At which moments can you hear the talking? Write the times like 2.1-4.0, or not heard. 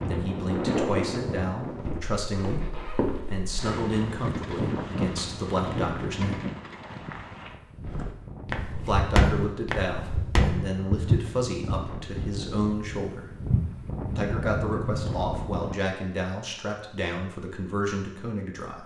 0.1-6.4, 8.8-13.3, 14.2-18.8.